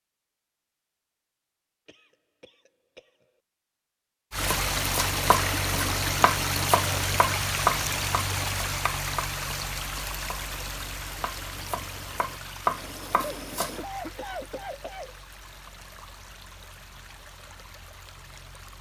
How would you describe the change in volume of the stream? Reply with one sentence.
The loudness of the stream goes down.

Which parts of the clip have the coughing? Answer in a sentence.
The coughing can be heard from 1.9 to 3.4 s and from 13.2 to 15.2 s.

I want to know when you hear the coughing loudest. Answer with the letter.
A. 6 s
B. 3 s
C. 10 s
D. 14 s
D.